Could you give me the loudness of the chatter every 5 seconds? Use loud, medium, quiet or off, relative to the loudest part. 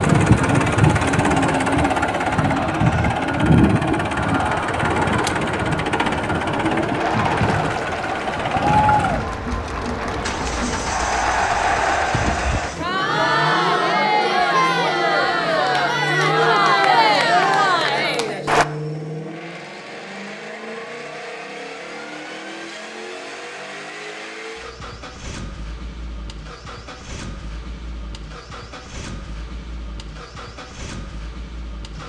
medium, medium, loud, loud, off, off, off.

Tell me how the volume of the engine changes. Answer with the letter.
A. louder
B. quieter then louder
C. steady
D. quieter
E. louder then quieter
D.